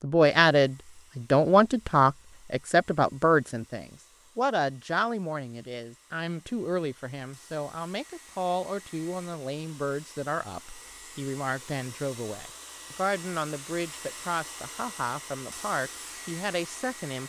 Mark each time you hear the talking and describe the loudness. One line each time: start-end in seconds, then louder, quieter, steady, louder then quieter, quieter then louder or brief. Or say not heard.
0.0-17.2 quieter.